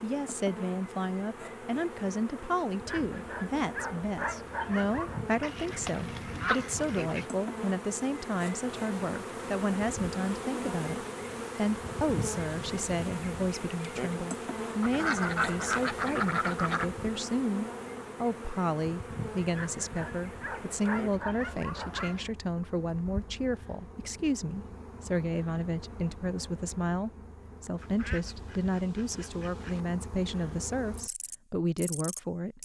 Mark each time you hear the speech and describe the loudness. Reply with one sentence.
The speech can be heard from 0.0 to 32.6 s, at a steady volume.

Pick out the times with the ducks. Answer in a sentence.
You can hear the ducks from 5.4 to 7.2 s, from 14.8 to 16.9 s and from 27.8 to 29.9 s.